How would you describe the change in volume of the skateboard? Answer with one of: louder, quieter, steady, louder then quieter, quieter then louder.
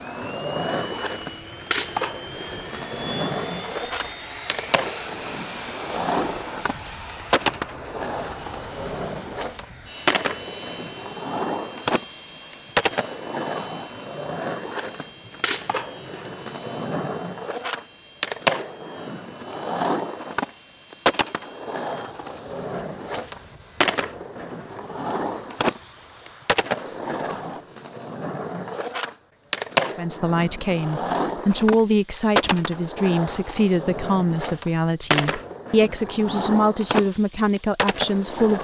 steady.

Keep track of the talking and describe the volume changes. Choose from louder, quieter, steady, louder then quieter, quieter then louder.
steady.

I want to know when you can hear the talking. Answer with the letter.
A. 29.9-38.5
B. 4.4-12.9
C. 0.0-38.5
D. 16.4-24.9
A.